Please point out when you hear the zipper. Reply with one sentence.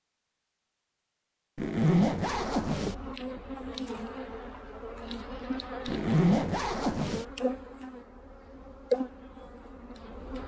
The zipper can be heard from 1.6 to 3.0 s and from 5.8 to 7.2 s.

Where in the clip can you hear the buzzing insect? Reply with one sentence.
The buzzing insect can be heard from 2.2 to 10.4 s.